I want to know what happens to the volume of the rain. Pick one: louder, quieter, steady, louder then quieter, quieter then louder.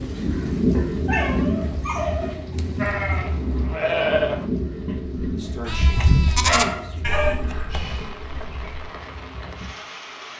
quieter.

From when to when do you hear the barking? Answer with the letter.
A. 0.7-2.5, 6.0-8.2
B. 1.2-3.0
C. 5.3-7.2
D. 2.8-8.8
A.